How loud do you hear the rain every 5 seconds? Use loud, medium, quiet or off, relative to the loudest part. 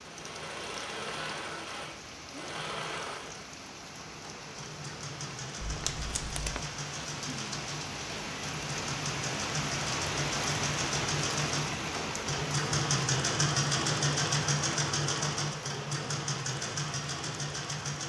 medium, loud, loud, medium.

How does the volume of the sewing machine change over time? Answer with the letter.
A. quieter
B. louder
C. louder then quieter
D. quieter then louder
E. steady
B.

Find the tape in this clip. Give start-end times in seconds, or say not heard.
5.6-6.7.